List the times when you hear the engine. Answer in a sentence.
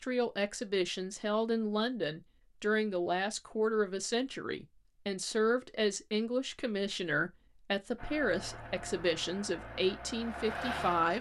The engine can be heard from 8.0 to 11.1 s.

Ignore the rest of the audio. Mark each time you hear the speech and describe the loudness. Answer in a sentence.
The speech can be heard from 0.0 to 11.1 s, at a steady volume.